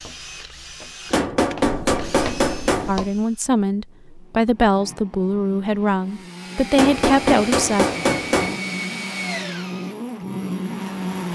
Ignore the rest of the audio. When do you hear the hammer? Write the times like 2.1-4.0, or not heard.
1.1-3.0, 6.8-8.6.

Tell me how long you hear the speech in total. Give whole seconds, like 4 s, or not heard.
5 s.